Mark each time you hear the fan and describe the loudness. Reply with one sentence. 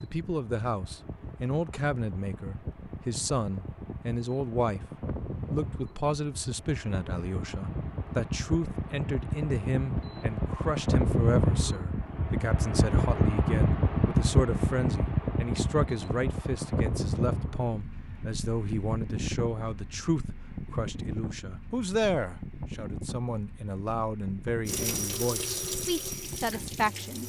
The fan can be heard from 0.0 to 27.2 s, getting louder then quieter.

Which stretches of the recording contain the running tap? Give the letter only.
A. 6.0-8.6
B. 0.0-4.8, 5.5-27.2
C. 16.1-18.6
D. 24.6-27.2
D.